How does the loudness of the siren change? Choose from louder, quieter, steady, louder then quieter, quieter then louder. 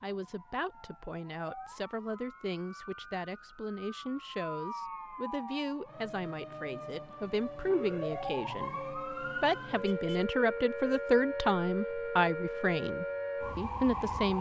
louder.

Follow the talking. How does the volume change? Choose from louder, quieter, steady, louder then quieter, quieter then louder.
louder.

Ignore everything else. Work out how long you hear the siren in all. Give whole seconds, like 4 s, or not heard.
14 s.